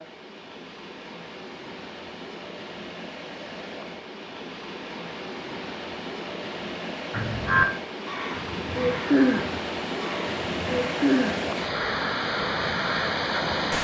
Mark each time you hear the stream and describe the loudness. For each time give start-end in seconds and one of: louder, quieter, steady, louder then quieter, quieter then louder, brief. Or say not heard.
0.0-13.7 louder.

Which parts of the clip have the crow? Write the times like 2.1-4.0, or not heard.
7.1-13.2.